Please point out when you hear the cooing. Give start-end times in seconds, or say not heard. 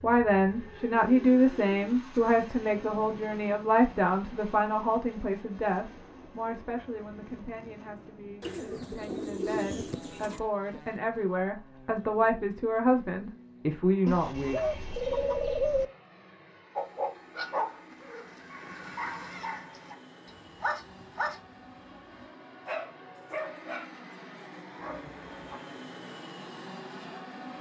8.4-10.4, 14.1-15.8.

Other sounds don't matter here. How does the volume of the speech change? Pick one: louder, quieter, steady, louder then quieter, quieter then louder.
quieter then louder.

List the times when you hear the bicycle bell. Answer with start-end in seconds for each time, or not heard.
not heard.